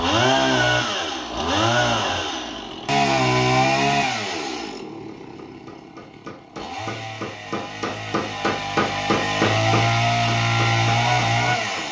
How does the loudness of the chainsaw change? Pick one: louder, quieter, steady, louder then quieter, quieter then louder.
quieter then louder.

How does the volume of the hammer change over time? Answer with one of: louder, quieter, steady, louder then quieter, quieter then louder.
louder then quieter.